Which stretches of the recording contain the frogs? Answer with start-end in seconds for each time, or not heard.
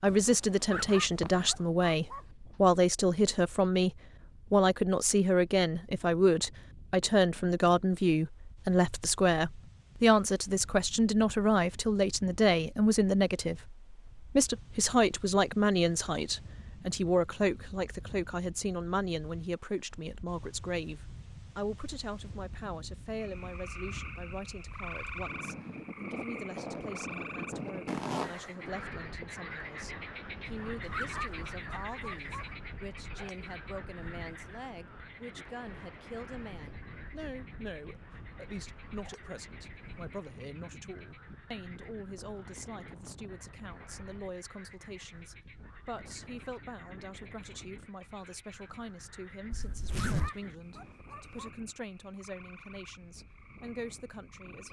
23.1-54.6.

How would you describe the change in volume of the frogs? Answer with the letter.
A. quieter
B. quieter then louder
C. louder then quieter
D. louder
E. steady
A.